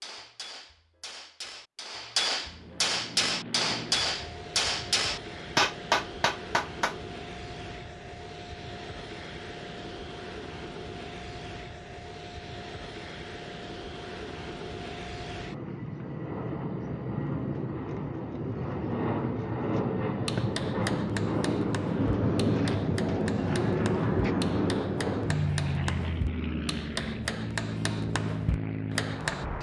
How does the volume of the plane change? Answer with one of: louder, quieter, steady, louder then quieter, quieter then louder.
louder.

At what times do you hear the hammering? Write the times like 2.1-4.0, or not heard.
0.0-7.0, 20.2-29.4.